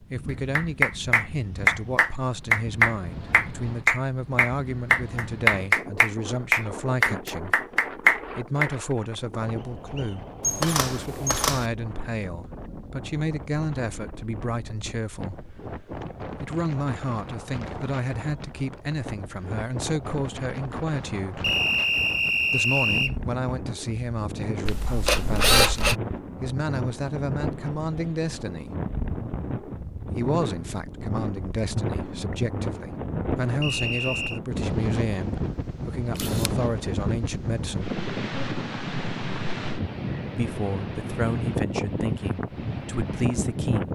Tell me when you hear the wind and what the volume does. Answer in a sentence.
You can hear the wind from 0.0 to 43.8 s, getting louder.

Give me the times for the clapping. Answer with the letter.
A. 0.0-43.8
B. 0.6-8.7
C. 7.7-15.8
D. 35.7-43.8
B.